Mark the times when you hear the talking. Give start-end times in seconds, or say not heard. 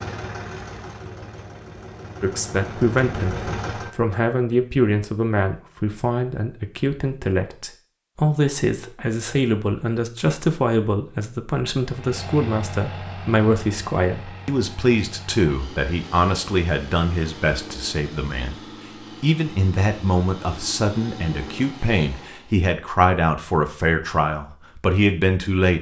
2.2-18.6, 19.2-25.7.